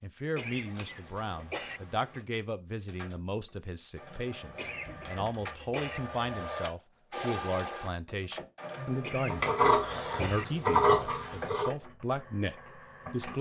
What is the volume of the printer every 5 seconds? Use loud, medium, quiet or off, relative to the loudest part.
medium, loud, medium.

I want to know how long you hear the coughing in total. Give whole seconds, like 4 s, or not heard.
4 s.